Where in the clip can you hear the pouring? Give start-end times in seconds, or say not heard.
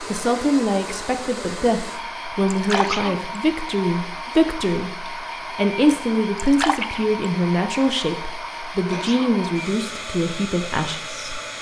2.5-3.1, 6.3-7.0.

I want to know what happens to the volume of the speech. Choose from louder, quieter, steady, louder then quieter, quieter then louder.
steady.